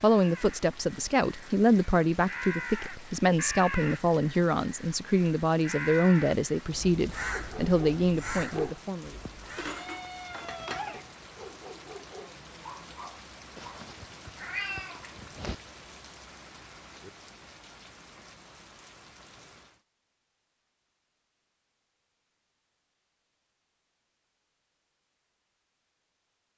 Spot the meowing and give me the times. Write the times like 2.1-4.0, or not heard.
9.5-11.1, 13.6-15.6.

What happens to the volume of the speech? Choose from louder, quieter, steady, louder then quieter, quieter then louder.
steady.